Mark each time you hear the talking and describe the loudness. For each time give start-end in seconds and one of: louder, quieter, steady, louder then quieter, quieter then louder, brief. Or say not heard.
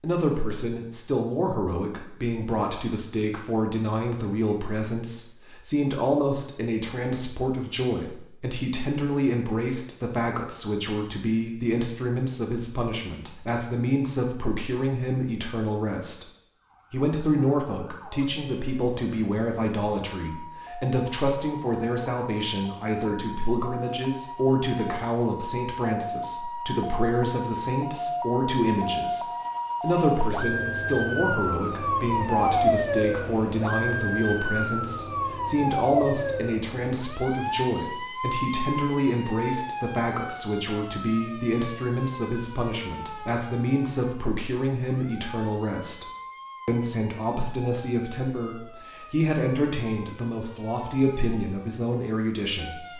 0.0-16.2 steady
16.9-52.9 steady.